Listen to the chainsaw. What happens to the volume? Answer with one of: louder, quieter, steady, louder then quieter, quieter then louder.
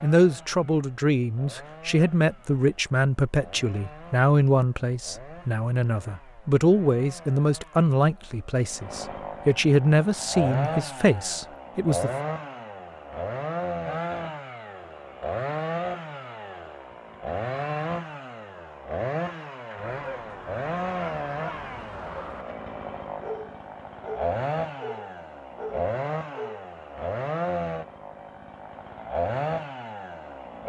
louder.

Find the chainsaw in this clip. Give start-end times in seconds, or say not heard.
0.0-30.6.